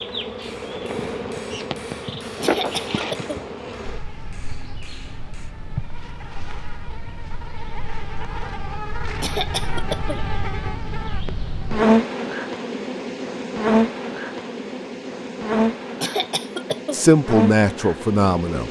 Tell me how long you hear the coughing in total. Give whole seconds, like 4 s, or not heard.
3 s.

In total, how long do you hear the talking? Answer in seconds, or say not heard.
2 s.